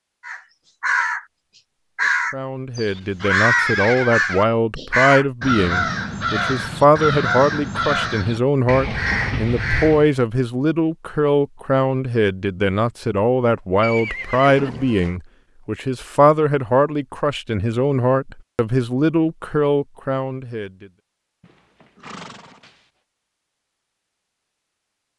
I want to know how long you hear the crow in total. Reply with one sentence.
The crow can be heard for 10 seconds in total.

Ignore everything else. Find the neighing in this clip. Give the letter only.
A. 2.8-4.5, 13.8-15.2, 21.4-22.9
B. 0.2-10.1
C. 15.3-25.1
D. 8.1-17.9
A.